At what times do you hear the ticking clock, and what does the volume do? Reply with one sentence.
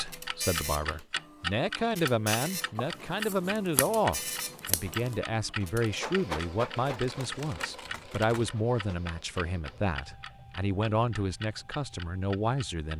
The ticking clock can be heard from 0.0 to 12.9 s, getting quieter.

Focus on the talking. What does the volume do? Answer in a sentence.
The loudness of the talking stays about the same.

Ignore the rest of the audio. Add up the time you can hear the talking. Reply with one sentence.
You can hear the talking for 13 seconds altogether.